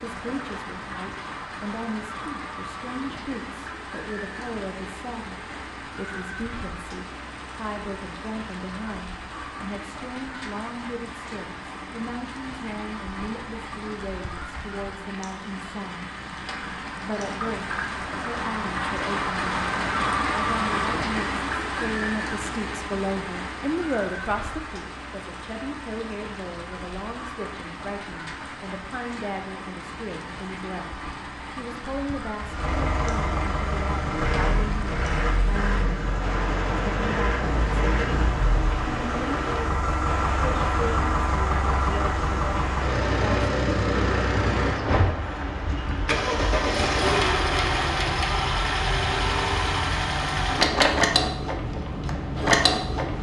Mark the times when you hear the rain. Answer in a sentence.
You can hear the rain from 0.0 to 53.1 s.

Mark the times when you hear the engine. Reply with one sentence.
You can hear the engine from 32.5 to 53.1 s.